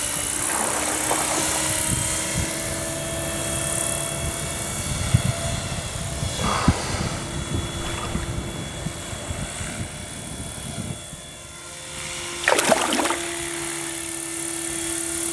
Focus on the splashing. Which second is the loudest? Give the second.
13 s.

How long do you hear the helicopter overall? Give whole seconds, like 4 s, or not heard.
15 s.